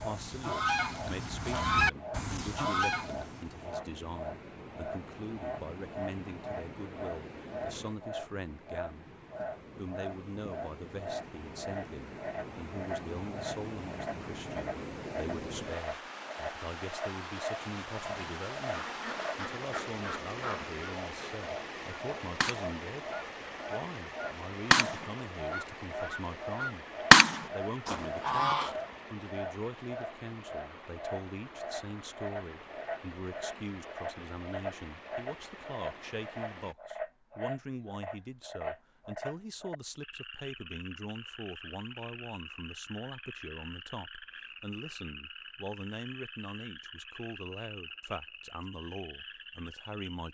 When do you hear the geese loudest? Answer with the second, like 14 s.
27 s.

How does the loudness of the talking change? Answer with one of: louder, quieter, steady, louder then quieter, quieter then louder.
steady.